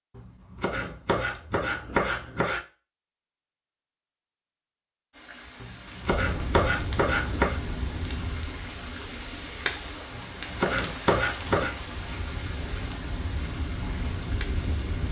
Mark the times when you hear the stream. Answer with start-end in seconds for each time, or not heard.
5.1-15.0.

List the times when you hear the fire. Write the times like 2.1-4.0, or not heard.
6.0-15.0.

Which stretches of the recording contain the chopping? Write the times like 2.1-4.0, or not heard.
0.1-2.6, 5.6-7.6, 10.1-11.8.